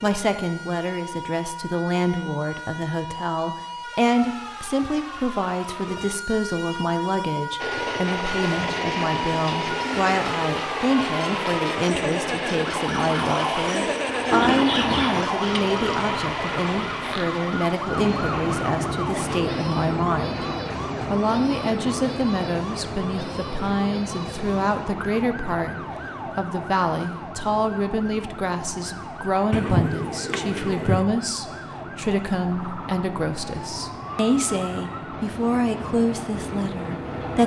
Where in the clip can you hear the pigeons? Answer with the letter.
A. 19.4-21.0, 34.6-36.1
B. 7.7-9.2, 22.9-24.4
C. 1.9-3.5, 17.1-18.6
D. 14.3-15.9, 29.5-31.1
D.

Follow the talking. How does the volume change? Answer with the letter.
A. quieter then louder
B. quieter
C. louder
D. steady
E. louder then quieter
D.